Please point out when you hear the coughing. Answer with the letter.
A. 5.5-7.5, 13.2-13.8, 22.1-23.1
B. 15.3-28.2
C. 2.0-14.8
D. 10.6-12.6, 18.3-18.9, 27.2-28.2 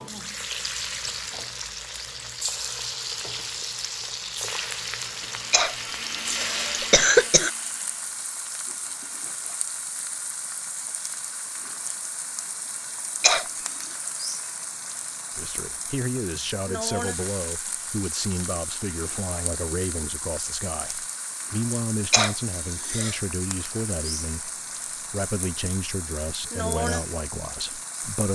A.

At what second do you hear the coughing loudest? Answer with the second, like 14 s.
7 s.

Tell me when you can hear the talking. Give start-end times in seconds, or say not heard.
15.3-28.2.